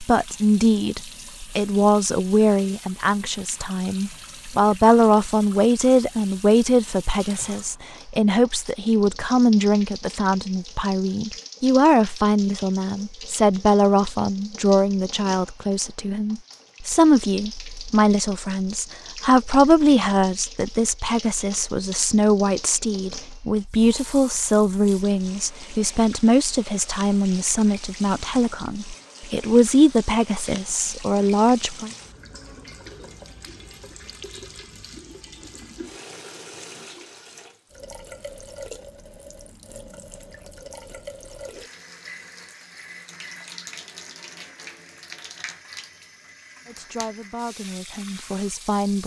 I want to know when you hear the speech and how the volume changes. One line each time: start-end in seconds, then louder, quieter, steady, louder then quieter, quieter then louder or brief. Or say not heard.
0.0-31.9 steady
46.6-49.0 brief.